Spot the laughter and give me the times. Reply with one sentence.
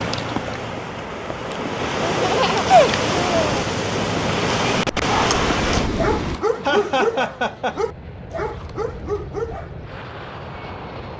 You can hear the laughter from 2.0 to 3.5 s and from 6.6 to 7.8 s.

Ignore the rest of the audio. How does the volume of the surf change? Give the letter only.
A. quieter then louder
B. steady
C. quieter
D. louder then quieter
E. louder
E.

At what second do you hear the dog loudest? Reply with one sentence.
The volume of the dog peaks at 7 seconds.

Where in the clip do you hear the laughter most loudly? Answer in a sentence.
The loudest moment of the laughter is at 3 seconds.